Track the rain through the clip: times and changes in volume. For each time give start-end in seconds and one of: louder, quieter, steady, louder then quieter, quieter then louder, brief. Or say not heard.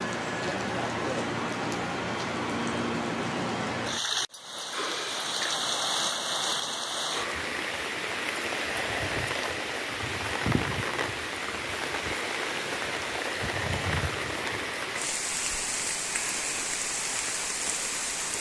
0.0-18.3 steady.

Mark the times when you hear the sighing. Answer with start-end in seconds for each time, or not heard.
4.7-5.7.